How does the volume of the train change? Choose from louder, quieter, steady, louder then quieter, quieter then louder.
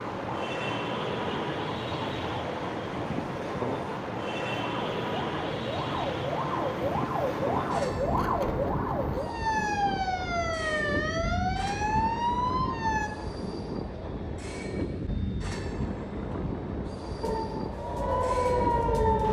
steady.